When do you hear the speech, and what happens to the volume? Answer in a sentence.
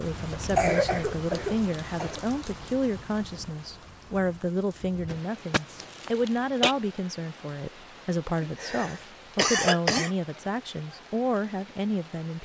You can hear the speech from 0.0 to 12.4 s, at a steady volume.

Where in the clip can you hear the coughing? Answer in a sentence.
You can hear the coughing from 0.3 to 2.2 s, from 5.0 to 6.8 s and from 8.4 to 10.1 s.